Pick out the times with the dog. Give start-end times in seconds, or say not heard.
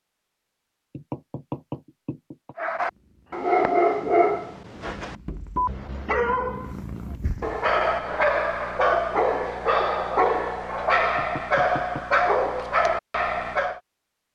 2.5-13.8.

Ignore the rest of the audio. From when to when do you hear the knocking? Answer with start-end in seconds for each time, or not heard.
0.9-2.5, 5.0-5.8, 11.2-12.2.